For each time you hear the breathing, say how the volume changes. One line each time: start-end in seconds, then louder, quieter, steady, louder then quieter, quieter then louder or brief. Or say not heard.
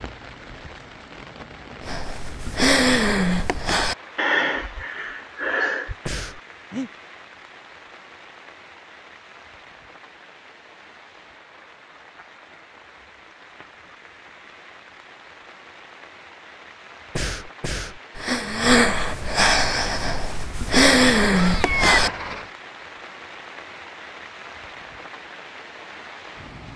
1.8-6.9 quieter
17.1-22.1 louder.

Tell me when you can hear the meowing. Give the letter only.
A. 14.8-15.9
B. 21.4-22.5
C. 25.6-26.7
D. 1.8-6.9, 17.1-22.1
B.